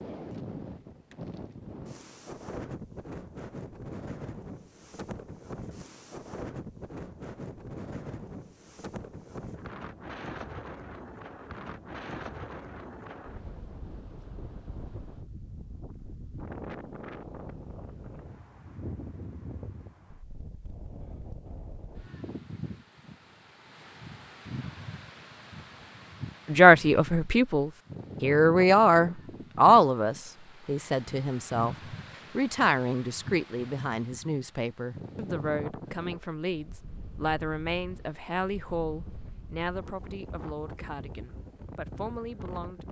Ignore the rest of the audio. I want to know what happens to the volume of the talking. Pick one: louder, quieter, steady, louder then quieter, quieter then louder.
quieter.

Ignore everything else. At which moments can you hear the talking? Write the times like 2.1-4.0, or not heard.
26.4-31.8, 32.4-42.8.